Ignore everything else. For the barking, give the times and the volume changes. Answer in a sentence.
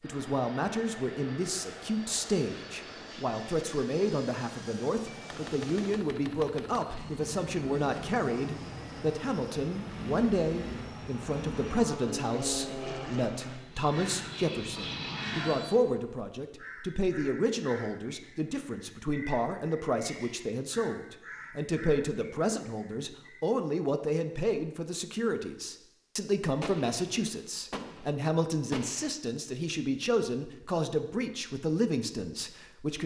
You can't hear the barking here.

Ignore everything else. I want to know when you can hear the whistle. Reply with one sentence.
You can't hear the whistle here.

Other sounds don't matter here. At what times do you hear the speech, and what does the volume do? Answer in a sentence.
The speech can be heard from 0.0 to 33.0 s, at a steady volume.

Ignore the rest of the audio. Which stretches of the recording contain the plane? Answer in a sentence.
You can hear the plane from 0.0 to 15.8 s.